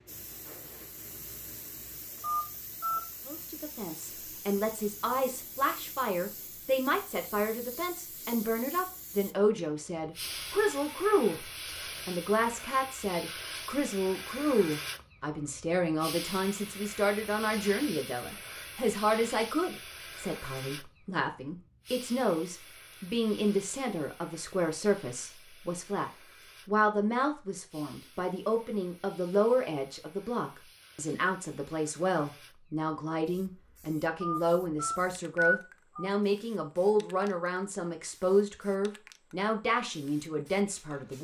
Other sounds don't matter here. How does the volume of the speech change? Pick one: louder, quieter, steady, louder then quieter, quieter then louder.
steady.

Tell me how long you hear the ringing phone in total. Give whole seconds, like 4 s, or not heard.
3 s.